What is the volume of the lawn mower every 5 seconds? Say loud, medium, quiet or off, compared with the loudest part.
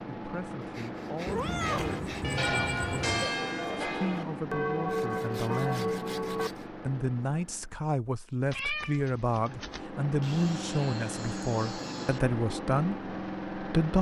loud, medium, loud.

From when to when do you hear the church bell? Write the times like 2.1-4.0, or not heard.
1.6-6.5.